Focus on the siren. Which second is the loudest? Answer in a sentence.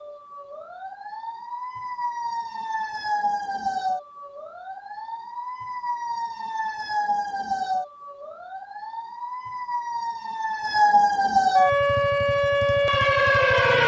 The loudest moment of the siren is at 11 seconds.